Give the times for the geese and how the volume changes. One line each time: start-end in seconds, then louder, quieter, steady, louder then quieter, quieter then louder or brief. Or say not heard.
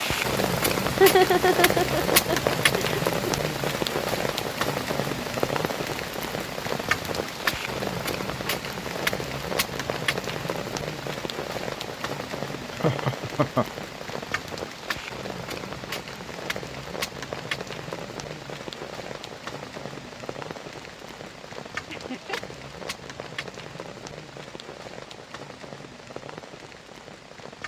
not heard.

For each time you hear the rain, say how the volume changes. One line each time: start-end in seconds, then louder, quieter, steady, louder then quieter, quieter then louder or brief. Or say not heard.
0.0-27.6 quieter.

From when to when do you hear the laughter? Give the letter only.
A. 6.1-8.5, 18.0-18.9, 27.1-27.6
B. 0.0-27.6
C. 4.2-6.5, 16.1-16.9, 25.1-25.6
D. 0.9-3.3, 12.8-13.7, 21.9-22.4
D.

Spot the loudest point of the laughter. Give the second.
1 s.